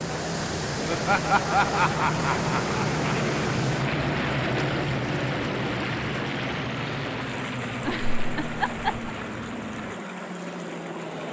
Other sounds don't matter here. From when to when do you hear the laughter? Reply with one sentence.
The laughter can be heard from 0.8 to 3.0 s and from 7.8 to 9.1 s.